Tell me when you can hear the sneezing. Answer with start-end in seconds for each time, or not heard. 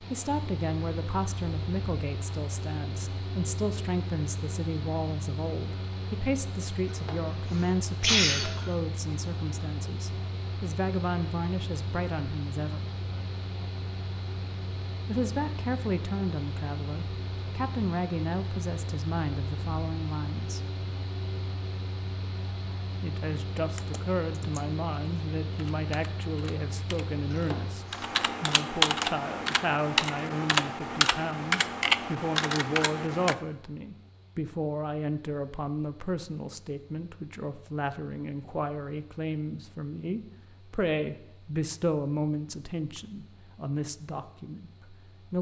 6.8-8.7, 27.3-28.1.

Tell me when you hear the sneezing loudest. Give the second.
8 s.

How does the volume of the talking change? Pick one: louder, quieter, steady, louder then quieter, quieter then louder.
steady.